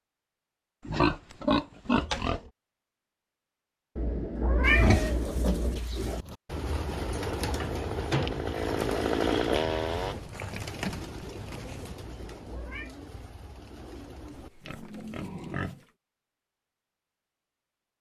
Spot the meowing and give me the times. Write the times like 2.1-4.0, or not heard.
4.0-5.8, 12.0-12.9.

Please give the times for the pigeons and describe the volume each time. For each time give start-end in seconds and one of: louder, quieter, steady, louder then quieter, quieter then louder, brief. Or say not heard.
6.2-15.6 quieter.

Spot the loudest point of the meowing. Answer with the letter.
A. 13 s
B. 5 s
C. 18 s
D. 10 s
B.